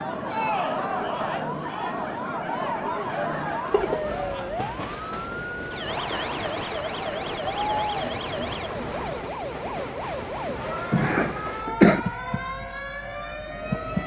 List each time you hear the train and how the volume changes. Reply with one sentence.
The train can be heard from 0.0 to 14.0 s, at a steady volume.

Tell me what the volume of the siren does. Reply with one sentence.
The loudness of the siren stays about the same.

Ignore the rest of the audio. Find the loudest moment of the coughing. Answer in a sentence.
The volume of the coughing peaks at 12 seconds.